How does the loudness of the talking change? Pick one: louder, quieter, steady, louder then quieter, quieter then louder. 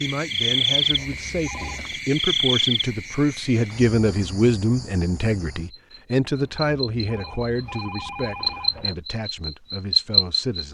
louder then quieter.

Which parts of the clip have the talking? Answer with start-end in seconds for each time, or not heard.
0.0-10.7.